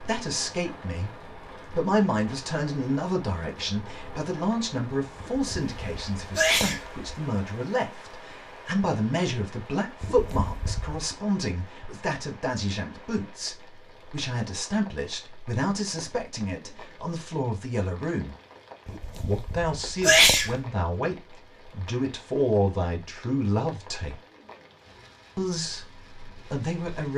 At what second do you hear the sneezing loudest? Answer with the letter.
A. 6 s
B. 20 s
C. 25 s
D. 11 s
B.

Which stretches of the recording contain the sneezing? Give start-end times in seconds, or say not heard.
5.2-7.1, 10.0-11.0, 18.9-20.6.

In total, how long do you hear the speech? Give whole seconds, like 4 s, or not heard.
25 s.